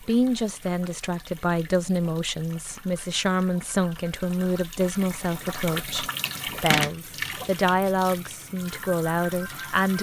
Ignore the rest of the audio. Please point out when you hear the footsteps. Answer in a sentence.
The footsteps can't be heard in this clip.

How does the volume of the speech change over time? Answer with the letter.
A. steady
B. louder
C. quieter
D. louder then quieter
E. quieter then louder
A.